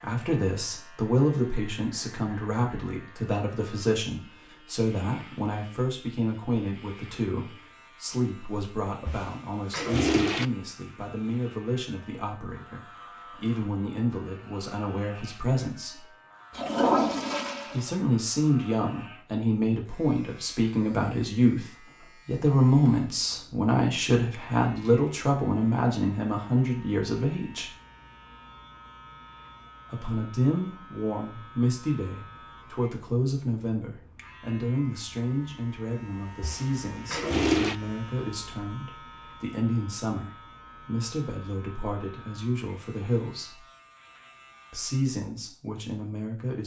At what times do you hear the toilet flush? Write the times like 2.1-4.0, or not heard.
9.1-10.4, 16.6-17.9, 36.4-37.8.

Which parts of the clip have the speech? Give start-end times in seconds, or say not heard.
0.0-16.1, 17.7-27.7, 29.9-43.6, 44.7-46.6.